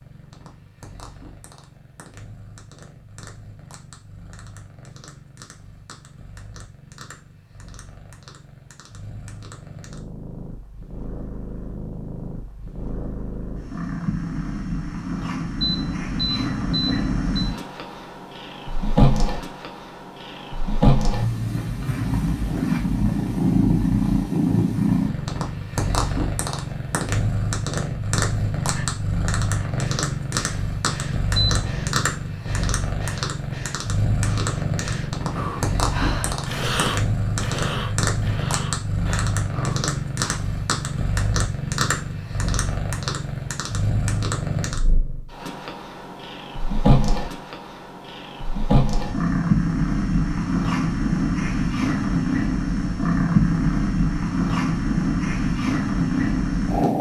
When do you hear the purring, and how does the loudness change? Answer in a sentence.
The purring can be heard from 0.0 to 56.9 s, getting louder.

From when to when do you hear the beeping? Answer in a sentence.
The beeping can be heard from 15.6 to 17.6 s and from 31.4 to 32.0 s.